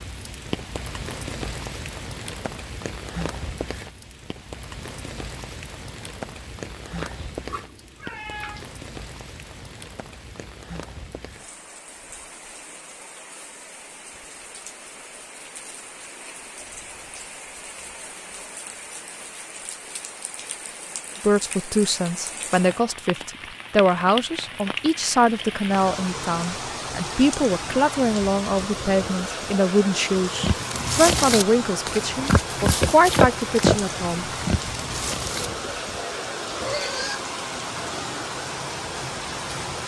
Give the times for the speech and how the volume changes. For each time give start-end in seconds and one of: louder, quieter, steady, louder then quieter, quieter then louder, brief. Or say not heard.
21.2-34.2 steady.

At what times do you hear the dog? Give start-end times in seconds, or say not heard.
not heard.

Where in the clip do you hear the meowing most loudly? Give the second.
8 s.